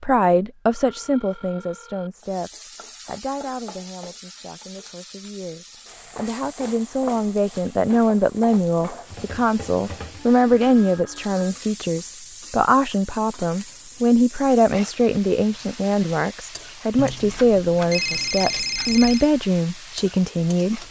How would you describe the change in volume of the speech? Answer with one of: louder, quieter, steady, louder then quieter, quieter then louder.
louder.